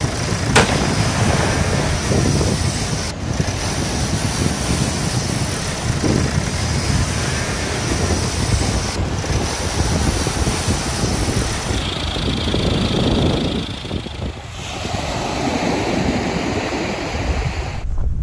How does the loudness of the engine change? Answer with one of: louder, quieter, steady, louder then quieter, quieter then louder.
steady.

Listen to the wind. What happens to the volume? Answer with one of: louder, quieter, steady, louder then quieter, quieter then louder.
steady.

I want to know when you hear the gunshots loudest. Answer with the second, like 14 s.
1 s.